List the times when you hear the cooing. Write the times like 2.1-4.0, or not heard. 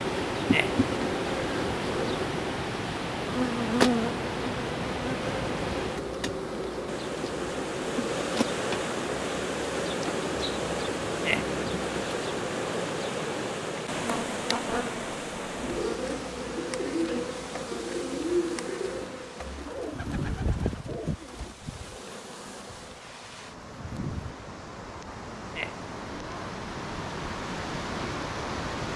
15.6-21.6.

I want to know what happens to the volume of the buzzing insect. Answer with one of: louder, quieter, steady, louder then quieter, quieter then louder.
quieter.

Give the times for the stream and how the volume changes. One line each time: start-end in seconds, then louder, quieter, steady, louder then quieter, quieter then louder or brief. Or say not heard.
0.0-28.9 quieter then louder.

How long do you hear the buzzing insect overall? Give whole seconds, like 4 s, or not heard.
24 s.